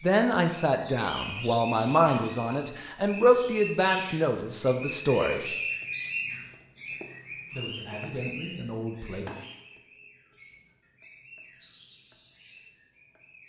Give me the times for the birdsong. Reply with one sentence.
You can hear the birdsong from 0.0 to 13.4 s.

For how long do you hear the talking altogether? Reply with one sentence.
You can hear the talking for 7 seconds altogether.